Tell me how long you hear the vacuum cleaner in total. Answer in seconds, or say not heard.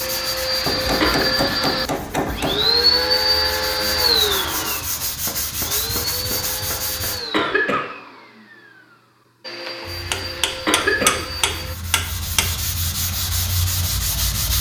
12 s.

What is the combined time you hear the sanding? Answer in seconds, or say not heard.
12 s.